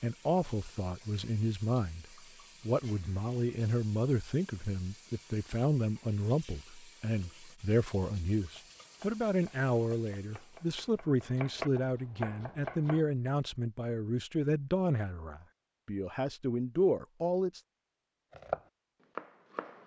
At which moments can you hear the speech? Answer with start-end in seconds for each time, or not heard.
0.0-17.6.